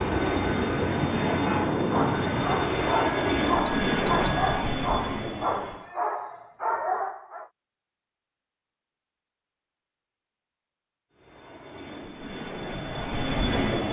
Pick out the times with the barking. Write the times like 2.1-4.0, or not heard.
1.4-7.5.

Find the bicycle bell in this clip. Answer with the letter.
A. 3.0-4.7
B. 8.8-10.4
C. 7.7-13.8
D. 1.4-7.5
A.